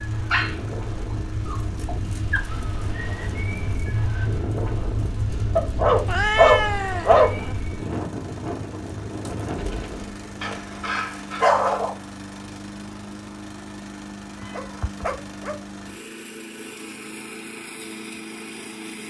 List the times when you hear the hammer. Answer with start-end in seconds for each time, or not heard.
not heard.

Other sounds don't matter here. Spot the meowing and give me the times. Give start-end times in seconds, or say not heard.
6.0-7.5, 14.3-15.1.